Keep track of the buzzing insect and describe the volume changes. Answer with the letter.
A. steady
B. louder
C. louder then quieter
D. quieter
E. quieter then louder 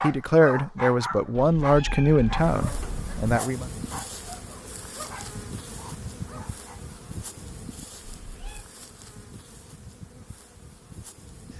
D.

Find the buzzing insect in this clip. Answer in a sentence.
You can hear the buzzing insect from 2.4 to 11.5 s.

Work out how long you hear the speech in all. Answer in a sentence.
You can hear the speech for 4 seconds altogether.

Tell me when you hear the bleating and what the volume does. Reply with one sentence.
You can't hear the bleating here.